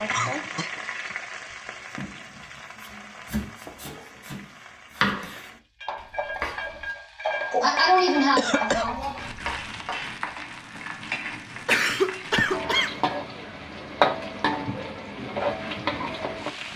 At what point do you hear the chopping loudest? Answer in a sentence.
The volume of the chopping peaks at 5 seconds.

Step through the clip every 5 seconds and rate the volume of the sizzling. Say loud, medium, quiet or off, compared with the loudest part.
medium, loud, loud, loud.